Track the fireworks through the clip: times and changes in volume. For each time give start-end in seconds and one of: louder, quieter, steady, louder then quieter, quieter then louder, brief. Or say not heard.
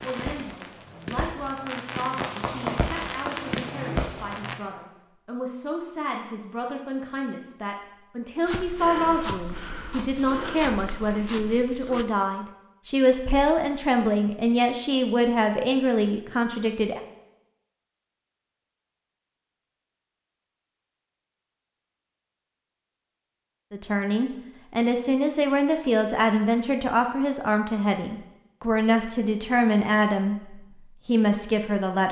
0.0-4.5 louder.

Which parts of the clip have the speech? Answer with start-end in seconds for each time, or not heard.
0.0-17.0, 23.7-32.0.